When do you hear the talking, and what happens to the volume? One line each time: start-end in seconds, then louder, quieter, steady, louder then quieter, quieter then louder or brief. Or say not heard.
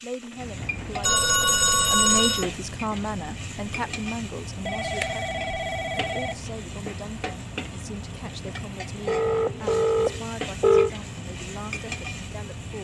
0.0-12.7 quieter.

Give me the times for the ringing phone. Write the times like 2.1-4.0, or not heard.
1.0-2.5, 4.7-6.3, 9.1-10.9.